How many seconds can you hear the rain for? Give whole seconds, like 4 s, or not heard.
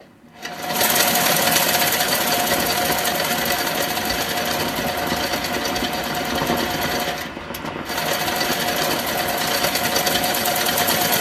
9 s.